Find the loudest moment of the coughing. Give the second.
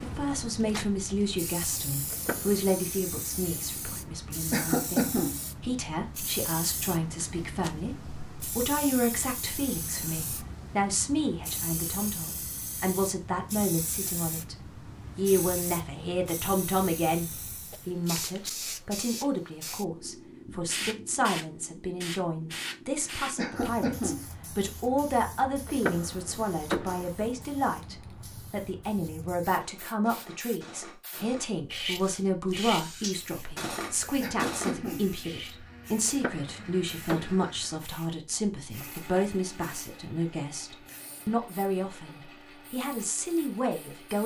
5 s.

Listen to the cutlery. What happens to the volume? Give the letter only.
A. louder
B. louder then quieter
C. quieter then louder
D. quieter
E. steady
A.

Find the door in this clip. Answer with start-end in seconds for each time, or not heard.
2.1-2.6, 25.6-27.1, 36.0-37.5.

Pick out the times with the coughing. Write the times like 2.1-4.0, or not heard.
4.5-5.3, 23.4-24.2, 34.2-35.0.